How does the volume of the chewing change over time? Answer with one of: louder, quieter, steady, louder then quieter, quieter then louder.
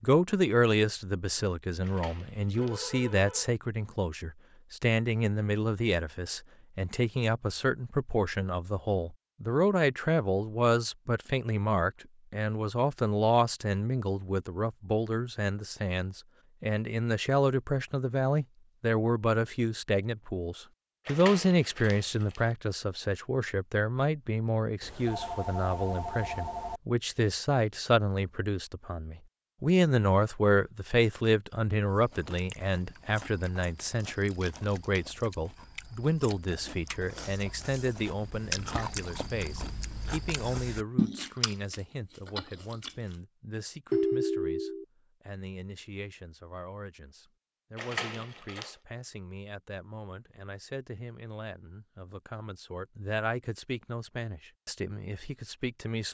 louder.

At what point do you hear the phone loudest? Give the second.
44 s.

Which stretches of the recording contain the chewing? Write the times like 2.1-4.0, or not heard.
31.9-43.1.